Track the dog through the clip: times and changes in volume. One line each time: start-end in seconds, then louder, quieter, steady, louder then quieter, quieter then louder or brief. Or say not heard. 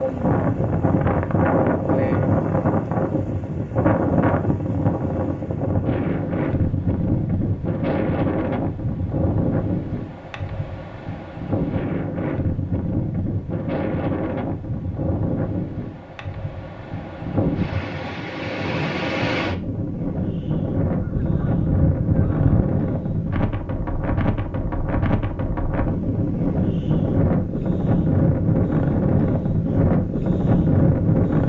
not heard.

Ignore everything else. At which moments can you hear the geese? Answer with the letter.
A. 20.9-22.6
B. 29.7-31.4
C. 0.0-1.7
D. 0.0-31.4
A.